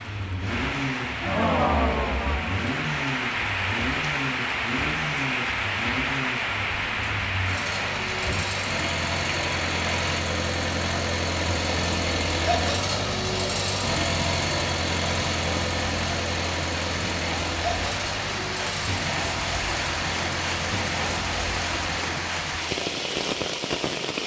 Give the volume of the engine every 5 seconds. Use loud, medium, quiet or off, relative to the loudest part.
medium, medium, loud, loud, medium.